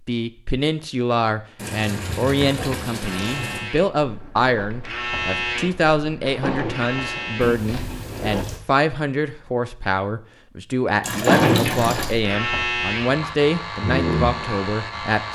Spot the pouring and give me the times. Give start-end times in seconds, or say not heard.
1.6-3.6, 7.4-8.6, 11.0-12.2.